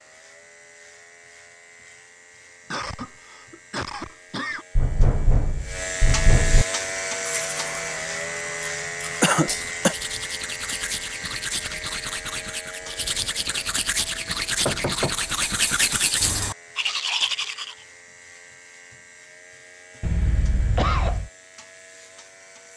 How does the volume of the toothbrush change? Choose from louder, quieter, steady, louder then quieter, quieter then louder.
louder.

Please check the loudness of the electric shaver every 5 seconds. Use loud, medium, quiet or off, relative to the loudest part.
quiet, loud, medium, quiet, quiet.